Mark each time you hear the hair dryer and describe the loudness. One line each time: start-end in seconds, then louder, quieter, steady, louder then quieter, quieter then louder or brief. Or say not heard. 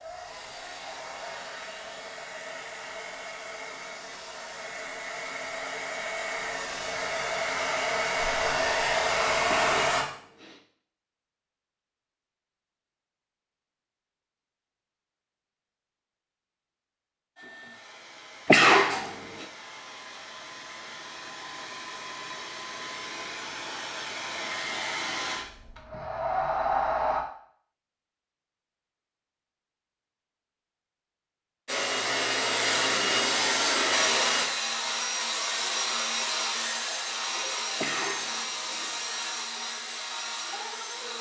0.0-10.1 louder
17.4-27.2 louder
31.6-41.1 quieter.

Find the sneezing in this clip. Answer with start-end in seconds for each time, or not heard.
9.4-10.6, 18.4-19.4, 37.8-39.0.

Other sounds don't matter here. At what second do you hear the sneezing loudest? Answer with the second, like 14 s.
19 s.